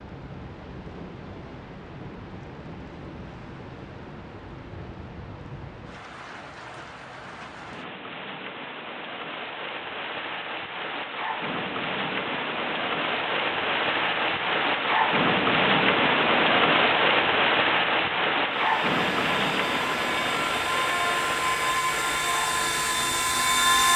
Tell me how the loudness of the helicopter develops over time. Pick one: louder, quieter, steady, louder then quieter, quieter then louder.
louder.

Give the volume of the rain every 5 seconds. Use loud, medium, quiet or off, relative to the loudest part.
quiet, quiet, medium, loud, medium.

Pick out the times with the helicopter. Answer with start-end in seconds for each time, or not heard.
18.5-23.9.